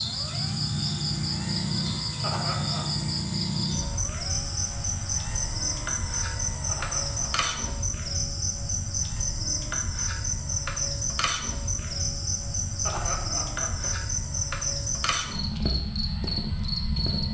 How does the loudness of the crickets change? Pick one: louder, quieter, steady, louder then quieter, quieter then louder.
steady.